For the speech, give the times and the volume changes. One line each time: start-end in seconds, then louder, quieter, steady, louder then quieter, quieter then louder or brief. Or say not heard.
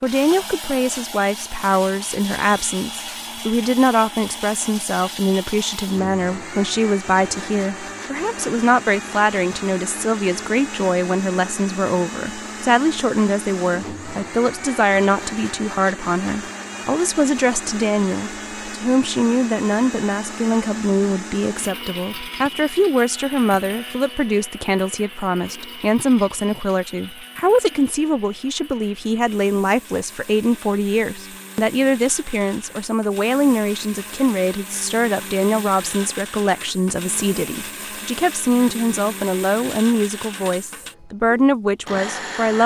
0.0-42.6 steady.